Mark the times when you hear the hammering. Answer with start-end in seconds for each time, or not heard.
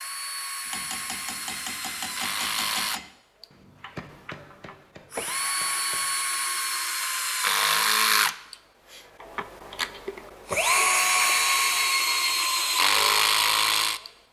0.7-6.1.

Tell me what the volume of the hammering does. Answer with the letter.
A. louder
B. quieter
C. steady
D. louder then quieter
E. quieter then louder
B.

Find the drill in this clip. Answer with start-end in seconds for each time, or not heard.
0.0-14.1.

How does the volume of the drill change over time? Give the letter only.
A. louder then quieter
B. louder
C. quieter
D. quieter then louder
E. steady
B.